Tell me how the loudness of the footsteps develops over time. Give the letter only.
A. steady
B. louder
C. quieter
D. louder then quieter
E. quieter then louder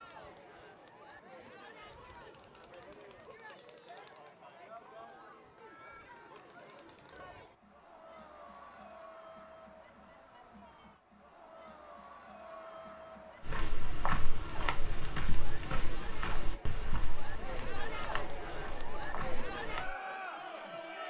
C.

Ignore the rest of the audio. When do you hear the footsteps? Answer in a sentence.
The footsteps can be heard from 13.4 to 19.9 s.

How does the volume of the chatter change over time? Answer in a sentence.
The volume of the chatter goes up.